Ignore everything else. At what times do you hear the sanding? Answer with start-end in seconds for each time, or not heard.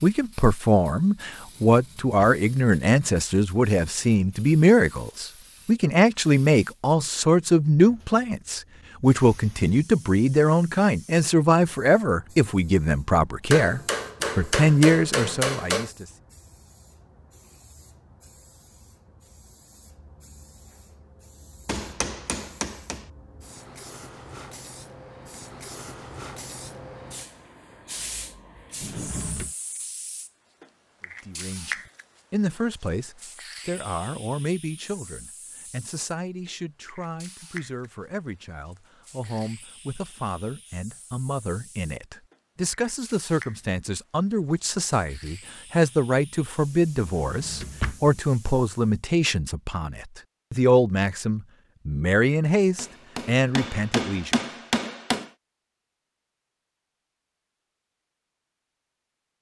not heard.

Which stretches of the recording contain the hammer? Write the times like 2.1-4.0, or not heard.
13.5-15.9, 21.6-23.1, 52.8-55.3.